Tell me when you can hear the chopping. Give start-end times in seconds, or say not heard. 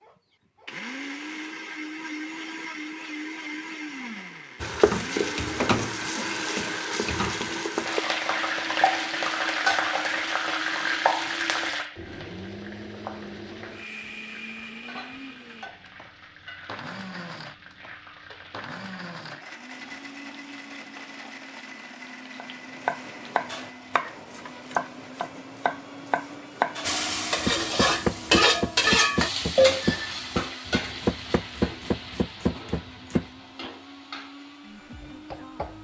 22.4-33.2.